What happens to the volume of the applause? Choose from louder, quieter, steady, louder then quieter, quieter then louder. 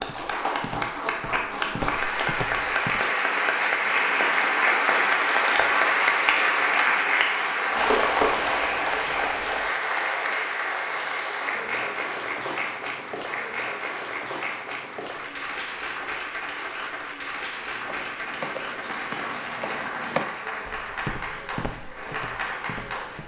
quieter.